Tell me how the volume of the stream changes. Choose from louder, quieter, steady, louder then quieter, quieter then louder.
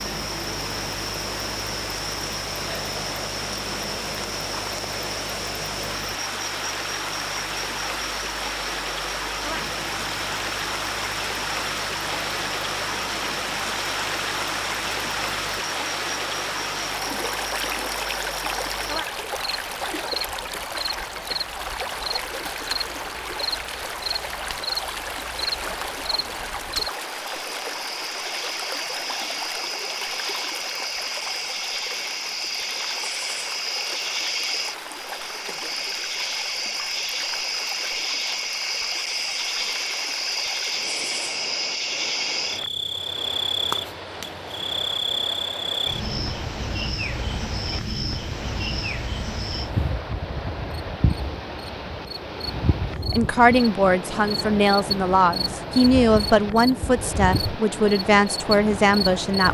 quieter.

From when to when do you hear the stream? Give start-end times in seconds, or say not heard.
0.0-59.5.